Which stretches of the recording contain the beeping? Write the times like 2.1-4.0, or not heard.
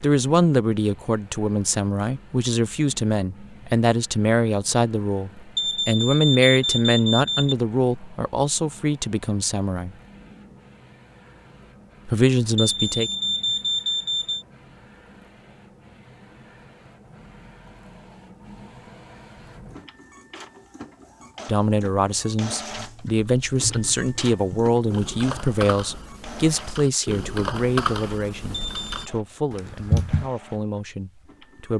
5.5-7.5, 12.6-14.4, 28.6-29.1.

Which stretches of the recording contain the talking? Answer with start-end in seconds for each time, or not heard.
0.0-9.9, 12.1-13.1, 21.4-31.7.